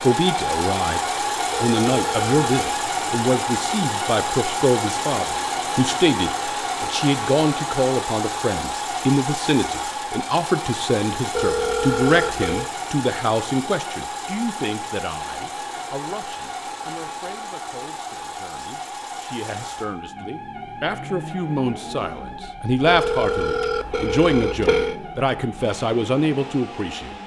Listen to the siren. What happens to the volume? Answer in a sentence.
The loudness of the siren goes down.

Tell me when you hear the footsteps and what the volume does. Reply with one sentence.
The footsteps can't be heard in this clip.